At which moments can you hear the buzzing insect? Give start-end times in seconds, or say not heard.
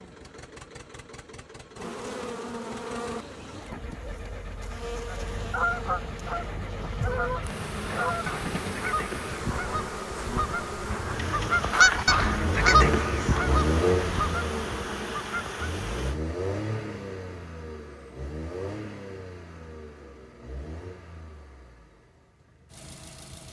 1.8-16.2.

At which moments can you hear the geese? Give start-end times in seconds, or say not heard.
5.0-15.7.